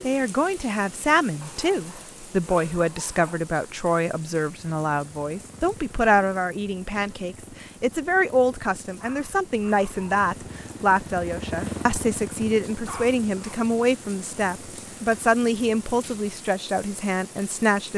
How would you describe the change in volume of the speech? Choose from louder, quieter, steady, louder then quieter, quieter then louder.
steady.